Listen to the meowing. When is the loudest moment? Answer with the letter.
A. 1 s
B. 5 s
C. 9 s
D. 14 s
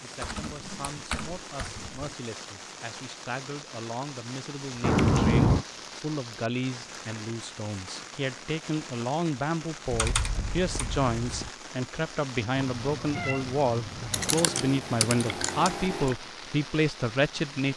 B.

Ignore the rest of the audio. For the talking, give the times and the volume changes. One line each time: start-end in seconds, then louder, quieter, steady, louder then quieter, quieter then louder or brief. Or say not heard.
0.0-17.7 louder.